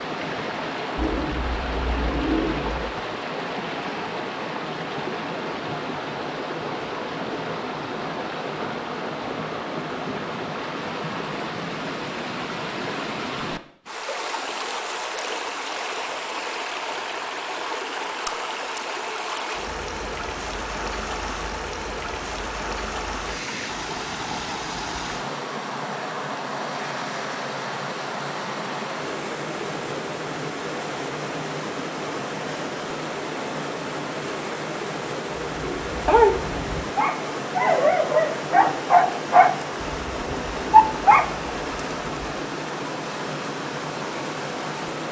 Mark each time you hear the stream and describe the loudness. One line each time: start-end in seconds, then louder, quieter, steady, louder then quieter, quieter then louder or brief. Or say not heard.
0.0-45.0 steady.